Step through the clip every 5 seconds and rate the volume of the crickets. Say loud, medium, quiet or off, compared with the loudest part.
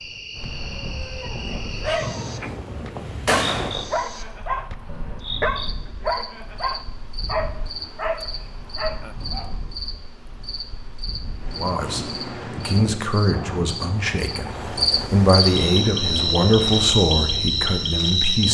quiet, quiet, medium, loud.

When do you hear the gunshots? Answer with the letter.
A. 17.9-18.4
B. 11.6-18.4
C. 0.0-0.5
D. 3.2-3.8
D.